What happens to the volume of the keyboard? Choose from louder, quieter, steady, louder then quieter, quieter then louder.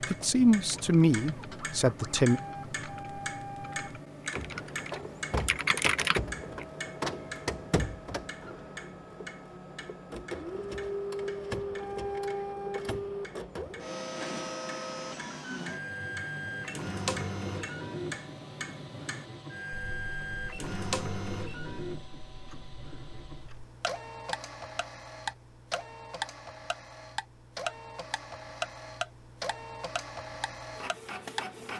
louder.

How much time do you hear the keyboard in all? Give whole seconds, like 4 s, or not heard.
7 s.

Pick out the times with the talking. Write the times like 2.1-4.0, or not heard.
0.1-2.4.